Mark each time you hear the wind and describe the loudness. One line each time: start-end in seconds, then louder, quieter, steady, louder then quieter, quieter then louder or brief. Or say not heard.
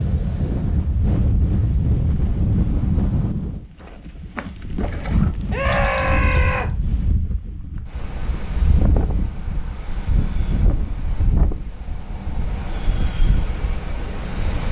0.0-14.6 quieter.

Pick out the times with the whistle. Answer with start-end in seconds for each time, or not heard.
not heard.